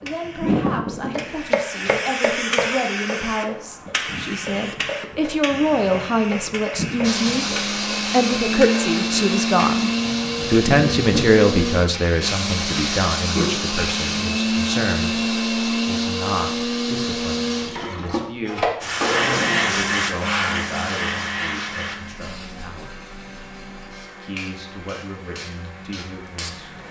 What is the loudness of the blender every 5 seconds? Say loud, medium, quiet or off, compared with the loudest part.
off, loud, loud, loud, quiet, quiet.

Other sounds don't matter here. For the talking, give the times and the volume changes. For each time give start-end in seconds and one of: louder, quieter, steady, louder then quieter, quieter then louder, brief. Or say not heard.
0.0-7.5 louder
8.1-23.0 quieter
24.1-26.8 brief.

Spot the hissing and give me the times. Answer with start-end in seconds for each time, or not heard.
0.0-14.2, 18.8-26.8.